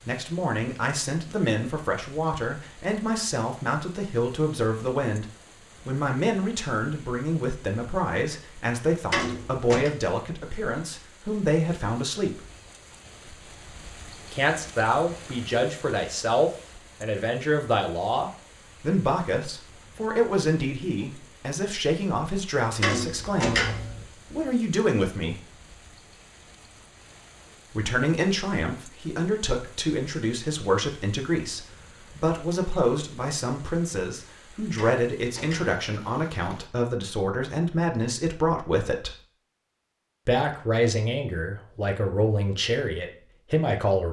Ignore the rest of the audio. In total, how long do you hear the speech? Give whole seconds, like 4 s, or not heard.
39 s.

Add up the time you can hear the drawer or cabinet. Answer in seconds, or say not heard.
3 s.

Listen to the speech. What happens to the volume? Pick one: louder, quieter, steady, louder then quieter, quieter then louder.
steady.